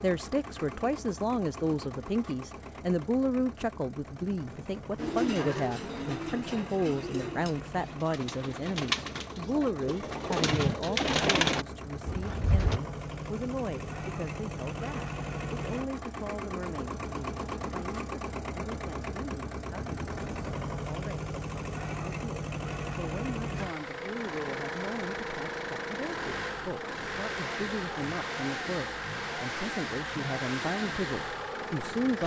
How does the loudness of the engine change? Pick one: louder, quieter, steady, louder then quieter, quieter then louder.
louder.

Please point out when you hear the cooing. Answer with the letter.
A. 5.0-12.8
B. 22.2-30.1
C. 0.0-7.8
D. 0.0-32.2
A.